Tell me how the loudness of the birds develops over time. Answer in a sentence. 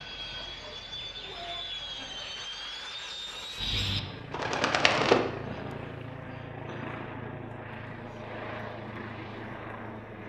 The volume of the birds goes up.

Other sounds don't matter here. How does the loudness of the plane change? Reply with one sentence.
The volume of the plane stays about the same.